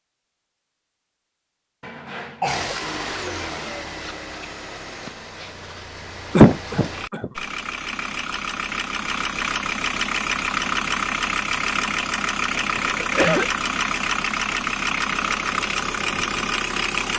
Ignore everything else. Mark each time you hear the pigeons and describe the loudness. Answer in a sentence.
You can't hear the pigeons here.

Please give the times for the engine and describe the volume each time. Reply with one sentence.
The engine can be heard from 2.5 to 17.1 s, getting louder.